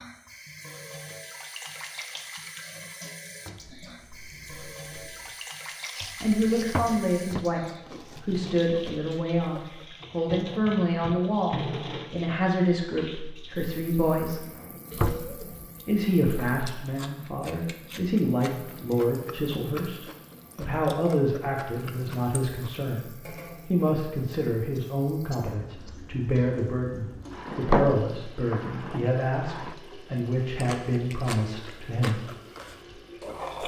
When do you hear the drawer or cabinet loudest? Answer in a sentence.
The loudest moment of the drawer or cabinet is at 28 seconds.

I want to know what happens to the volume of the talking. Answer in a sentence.
The loudness of the talking stays about the same.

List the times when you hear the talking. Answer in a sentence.
You can hear the talking from 6.2 to 14.4 s and from 15.8 to 32.2 s.